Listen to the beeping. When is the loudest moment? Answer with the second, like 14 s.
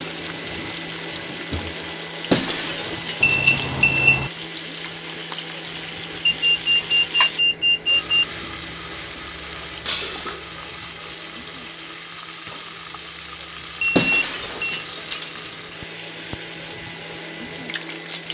4 s.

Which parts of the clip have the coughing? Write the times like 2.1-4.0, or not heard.
not heard.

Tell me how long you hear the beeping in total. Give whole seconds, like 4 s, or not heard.
4 s.